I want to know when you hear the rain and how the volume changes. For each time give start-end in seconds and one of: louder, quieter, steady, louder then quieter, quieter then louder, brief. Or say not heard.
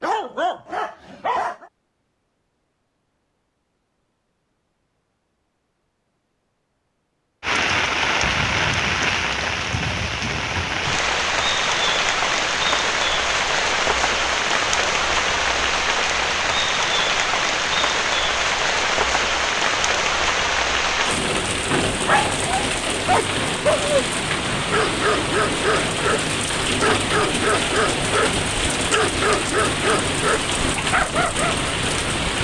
7.4-32.3 steady.